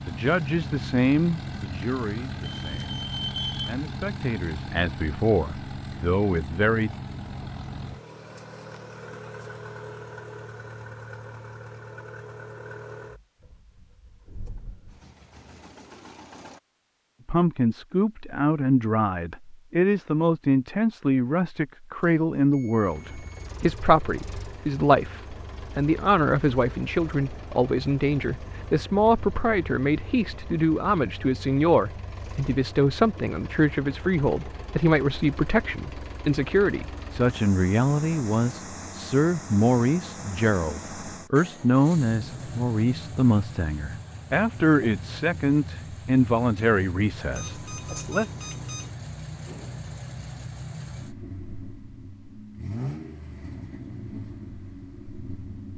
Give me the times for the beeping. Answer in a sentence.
The beeping can be heard from 2.6 to 3.8 s, from 22.0 to 23.7 s and from 47.3 to 48.9 s.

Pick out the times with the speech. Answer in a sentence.
You can hear the speech from 0.1 to 6.9 s and from 17.2 to 48.2 s.